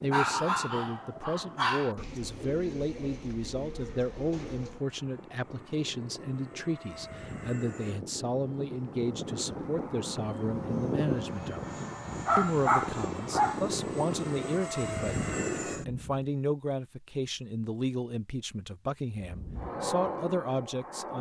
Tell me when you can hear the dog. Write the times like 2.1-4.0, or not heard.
0.1-1.9, 12.2-13.6.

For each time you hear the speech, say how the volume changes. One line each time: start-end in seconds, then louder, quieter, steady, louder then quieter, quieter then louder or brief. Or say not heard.
0.0-11.7 steady
12.3-21.1 steady.